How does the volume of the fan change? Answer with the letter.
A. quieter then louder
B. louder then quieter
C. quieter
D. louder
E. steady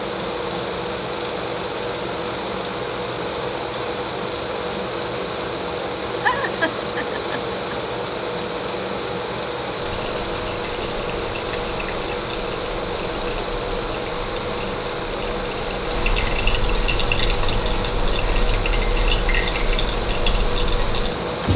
E.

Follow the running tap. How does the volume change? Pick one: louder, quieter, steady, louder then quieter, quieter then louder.
louder.